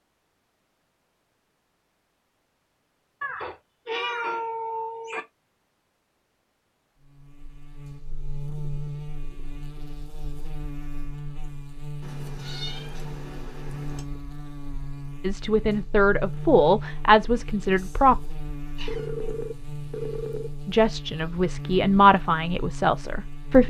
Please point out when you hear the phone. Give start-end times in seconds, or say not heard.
18.9-20.6.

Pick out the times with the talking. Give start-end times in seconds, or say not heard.
15.2-18.2, 20.6-23.6.